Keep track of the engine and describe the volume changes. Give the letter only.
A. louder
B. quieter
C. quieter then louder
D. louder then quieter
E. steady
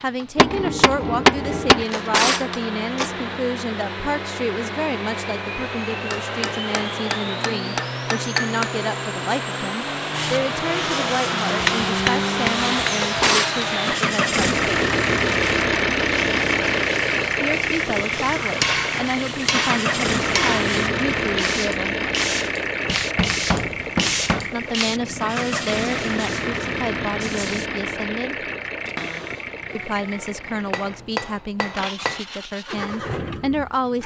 D.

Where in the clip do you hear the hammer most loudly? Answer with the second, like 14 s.
1 s.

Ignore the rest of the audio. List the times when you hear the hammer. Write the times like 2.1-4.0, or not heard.
0.3-1.9, 6.1-8.7, 11.6-13.1, 18.6-20.6, 22.9-24.5, 30.4-32.2.